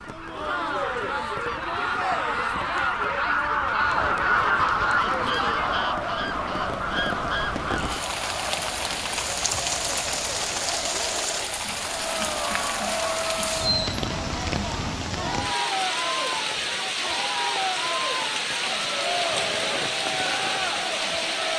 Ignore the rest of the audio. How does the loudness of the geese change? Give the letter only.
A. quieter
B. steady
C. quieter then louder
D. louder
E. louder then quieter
E.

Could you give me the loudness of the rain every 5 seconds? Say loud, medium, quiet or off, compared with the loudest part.
quiet, loud, loud, loud, loud.